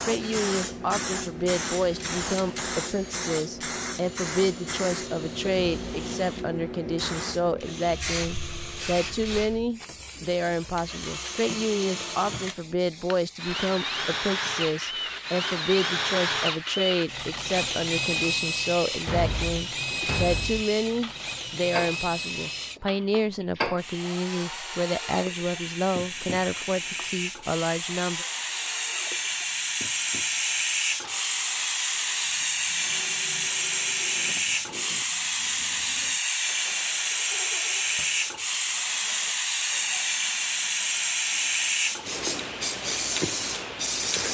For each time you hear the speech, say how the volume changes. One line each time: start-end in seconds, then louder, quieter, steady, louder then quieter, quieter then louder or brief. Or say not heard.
0.0-28.2 steady.